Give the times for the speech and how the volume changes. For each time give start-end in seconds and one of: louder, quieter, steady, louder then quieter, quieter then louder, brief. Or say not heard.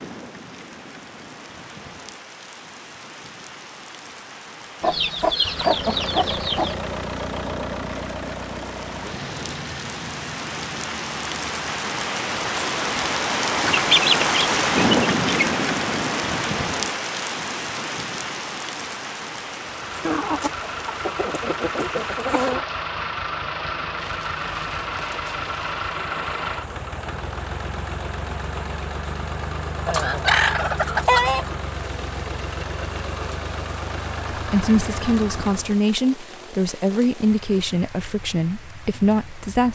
34.4-39.7 steady.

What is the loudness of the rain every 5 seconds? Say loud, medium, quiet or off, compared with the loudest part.
quiet, quiet, loud, loud, quiet, quiet, quiet, quiet.